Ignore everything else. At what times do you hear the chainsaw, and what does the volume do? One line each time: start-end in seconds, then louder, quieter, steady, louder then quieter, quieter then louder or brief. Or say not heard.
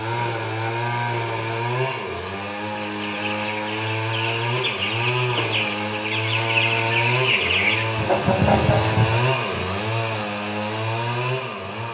0.0-11.8 steady.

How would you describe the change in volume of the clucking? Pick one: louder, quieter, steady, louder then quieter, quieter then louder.
louder.